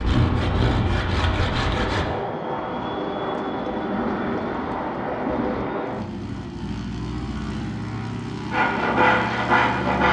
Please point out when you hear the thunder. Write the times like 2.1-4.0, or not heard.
2.5-5.7.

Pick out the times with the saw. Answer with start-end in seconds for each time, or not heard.
0.0-2.1, 8.5-10.0.